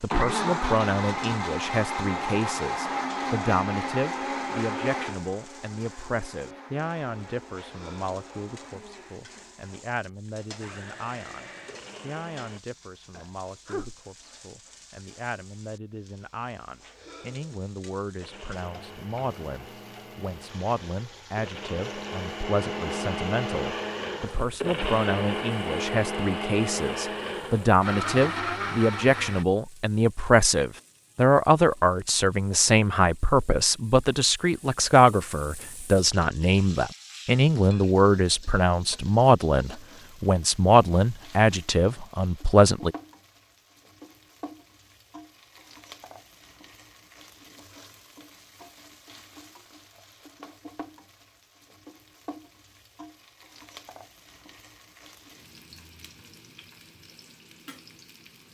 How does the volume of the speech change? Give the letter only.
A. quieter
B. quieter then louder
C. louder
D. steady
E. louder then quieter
B.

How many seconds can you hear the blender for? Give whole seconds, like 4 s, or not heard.
24 s.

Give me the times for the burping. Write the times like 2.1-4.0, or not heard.
13.1-13.9.